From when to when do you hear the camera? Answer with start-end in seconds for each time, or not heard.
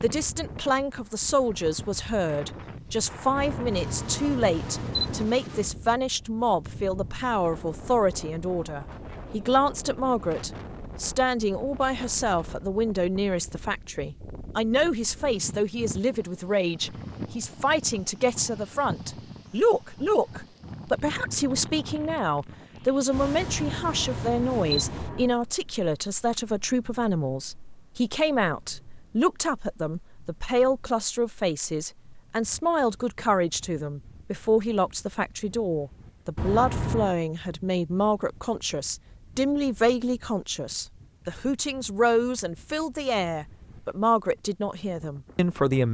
3.4-5.3, 23.1-25.4, 36.4-37.1.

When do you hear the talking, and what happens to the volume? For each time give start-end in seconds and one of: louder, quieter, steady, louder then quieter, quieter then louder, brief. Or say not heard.
0.0-45.8 steady.